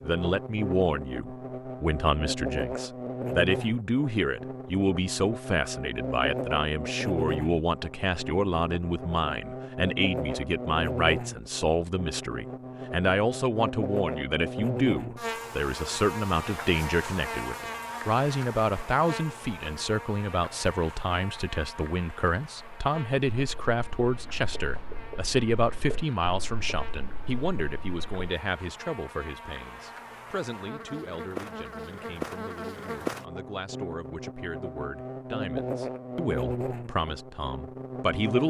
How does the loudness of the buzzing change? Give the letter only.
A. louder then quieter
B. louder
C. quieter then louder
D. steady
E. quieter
C.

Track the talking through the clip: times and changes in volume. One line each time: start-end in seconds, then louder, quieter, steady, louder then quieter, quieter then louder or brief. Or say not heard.
0.0-38.4 quieter.